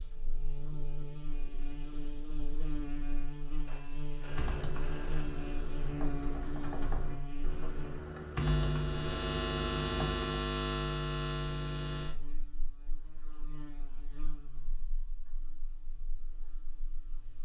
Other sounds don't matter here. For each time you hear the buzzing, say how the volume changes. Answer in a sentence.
You can hear the buzzing from 0.0 to 17.3 s, getting louder then quieter.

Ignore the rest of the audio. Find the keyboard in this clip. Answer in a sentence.
The keyboard can be heard from 4.2 to 10.2 s.